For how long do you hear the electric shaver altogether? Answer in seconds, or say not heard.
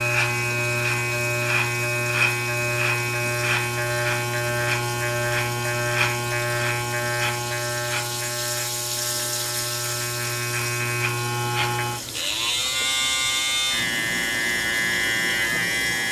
16 s.